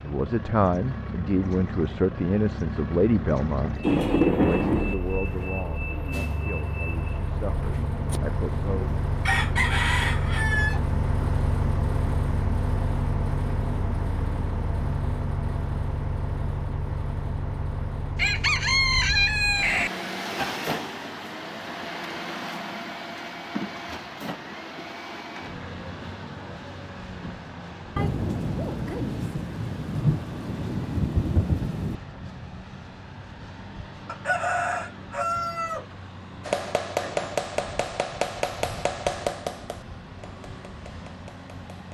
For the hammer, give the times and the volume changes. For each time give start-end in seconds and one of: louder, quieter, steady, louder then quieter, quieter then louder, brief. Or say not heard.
36.4-41.8 quieter.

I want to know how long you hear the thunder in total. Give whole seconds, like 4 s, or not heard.
5 s.